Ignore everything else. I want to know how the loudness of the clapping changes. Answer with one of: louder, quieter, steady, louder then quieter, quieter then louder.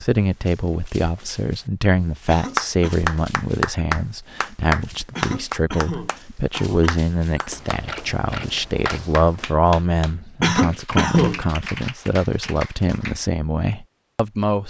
quieter.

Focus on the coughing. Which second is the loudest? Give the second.
11 s.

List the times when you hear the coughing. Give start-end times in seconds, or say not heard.
2.2-3.0, 5.2-7.0, 10.4-11.4.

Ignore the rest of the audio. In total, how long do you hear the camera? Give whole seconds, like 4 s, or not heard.
2 s.